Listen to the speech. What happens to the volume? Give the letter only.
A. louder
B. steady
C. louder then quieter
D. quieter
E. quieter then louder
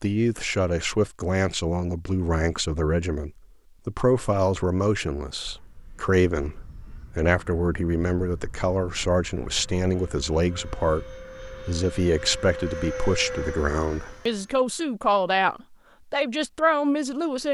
B.